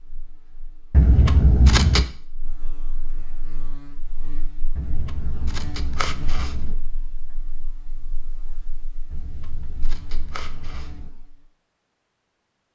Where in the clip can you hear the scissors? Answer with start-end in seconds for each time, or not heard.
0.9-2.0, 4.8-6.8, 9.1-11.1.